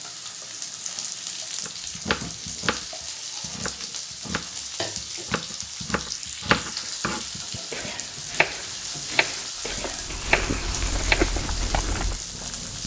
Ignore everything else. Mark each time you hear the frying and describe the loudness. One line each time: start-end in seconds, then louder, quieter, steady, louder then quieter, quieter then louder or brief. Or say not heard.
0.0-12.8 steady.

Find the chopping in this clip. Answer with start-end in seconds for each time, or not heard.
1.6-12.1.